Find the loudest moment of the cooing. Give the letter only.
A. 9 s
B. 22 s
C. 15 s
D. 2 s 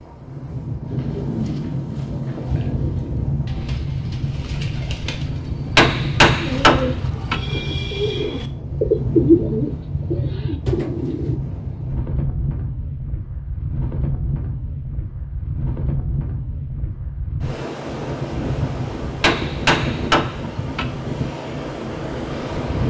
A.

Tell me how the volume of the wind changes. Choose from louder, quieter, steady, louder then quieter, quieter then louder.
steady.